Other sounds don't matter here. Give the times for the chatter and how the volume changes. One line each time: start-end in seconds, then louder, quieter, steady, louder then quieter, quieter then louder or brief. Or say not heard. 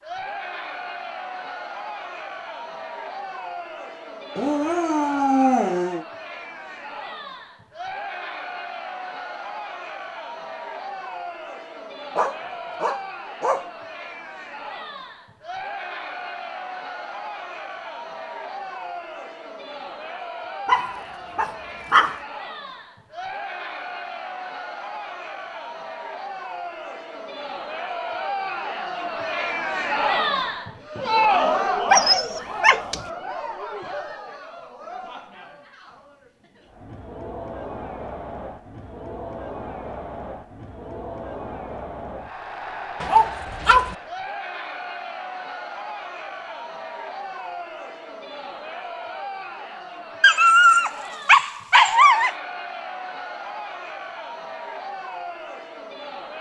0.0-56.3 louder then quieter.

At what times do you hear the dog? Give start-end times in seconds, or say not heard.
4.3-6.0, 12.2-13.7, 20.6-22.2, 31.9-33.0, 43.0-44.0, 50.2-52.3.